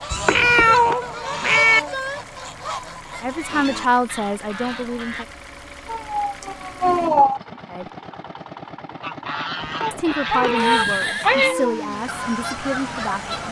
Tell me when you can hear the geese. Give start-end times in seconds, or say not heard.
0.0-5.2, 9.0-13.4.